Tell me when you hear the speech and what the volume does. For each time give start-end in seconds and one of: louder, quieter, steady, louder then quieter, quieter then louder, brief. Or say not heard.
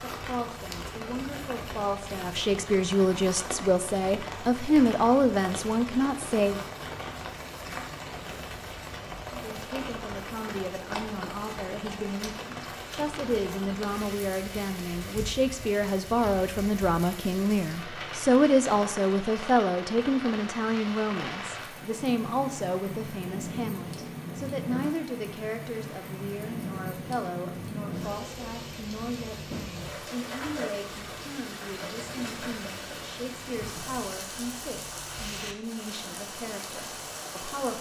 0.0-6.7 louder
9.3-37.7 louder then quieter.